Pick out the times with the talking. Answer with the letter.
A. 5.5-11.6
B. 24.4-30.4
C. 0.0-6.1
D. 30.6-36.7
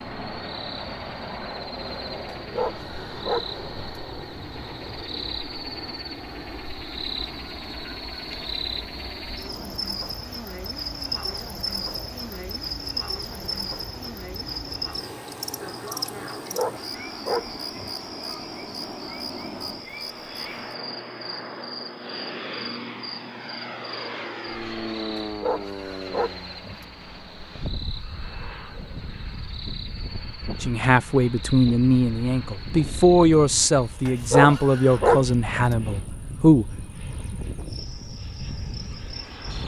D.